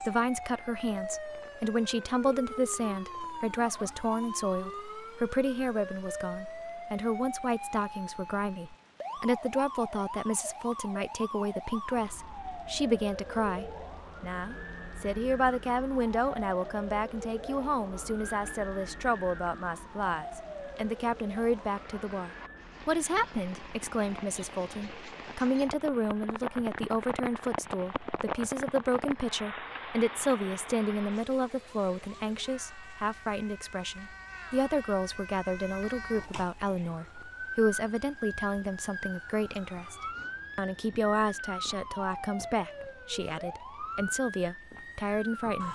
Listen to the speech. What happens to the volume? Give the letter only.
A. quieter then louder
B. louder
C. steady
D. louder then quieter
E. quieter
C.